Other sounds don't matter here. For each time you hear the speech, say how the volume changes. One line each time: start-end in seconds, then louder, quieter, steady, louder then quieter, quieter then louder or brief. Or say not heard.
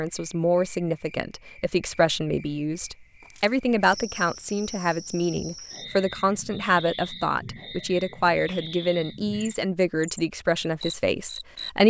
0.0-11.8 steady.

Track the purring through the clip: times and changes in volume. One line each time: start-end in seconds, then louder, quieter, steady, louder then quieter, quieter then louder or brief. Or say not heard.
not heard.